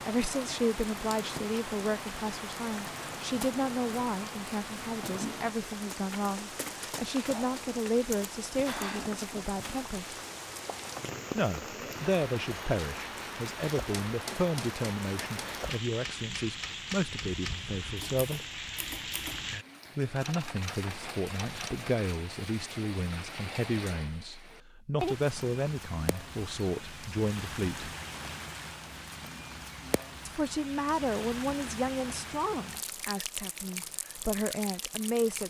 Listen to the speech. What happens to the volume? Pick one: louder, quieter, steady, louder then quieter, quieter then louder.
steady.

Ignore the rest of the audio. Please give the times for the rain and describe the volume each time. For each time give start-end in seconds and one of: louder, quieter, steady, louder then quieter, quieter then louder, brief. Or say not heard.
0.0-35.4 steady.